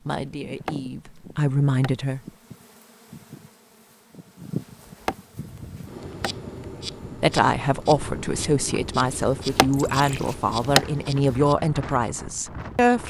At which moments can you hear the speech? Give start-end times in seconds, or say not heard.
0.0-2.2, 6.8-13.0.